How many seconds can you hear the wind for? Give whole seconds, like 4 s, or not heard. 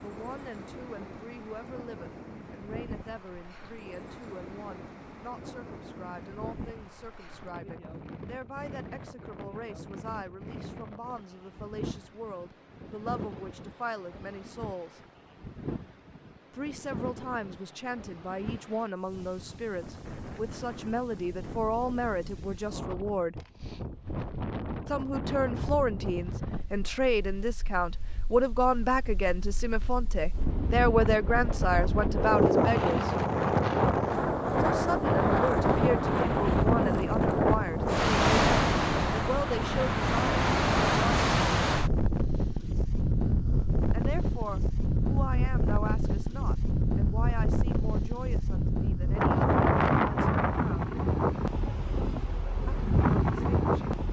54 s.